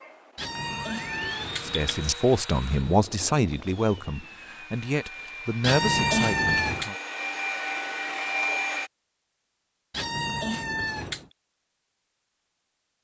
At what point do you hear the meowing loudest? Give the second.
6 s.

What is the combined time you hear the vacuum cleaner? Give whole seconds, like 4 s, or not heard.
9 s.